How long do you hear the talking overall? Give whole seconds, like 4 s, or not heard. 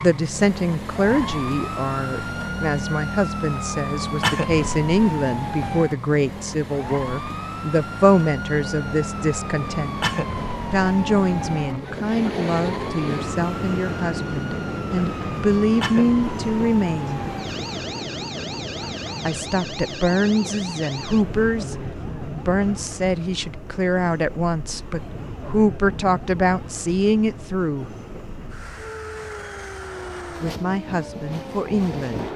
27 s.